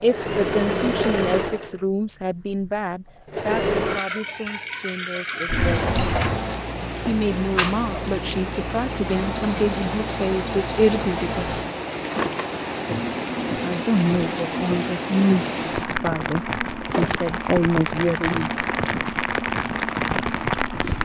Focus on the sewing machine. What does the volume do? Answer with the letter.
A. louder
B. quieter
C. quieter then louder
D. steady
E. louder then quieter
B.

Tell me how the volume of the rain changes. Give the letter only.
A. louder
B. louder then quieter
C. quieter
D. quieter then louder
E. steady
A.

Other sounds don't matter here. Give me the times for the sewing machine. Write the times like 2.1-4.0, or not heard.
0.0-21.0.